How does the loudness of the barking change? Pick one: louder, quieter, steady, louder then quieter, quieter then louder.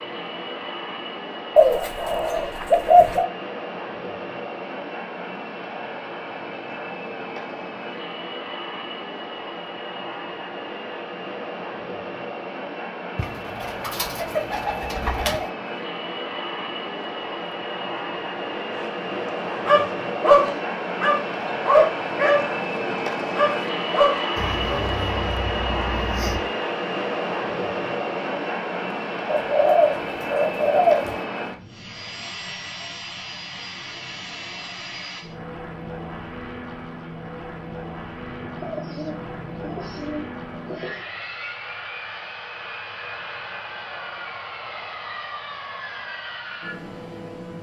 quieter.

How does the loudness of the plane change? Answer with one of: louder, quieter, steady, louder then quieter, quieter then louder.
louder then quieter.